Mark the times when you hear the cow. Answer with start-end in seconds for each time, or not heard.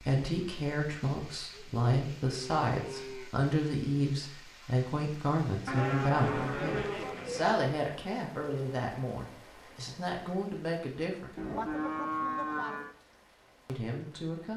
1.3-3.3, 5.7-7.6, 11.3-12.9.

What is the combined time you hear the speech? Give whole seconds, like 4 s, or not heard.
12 s.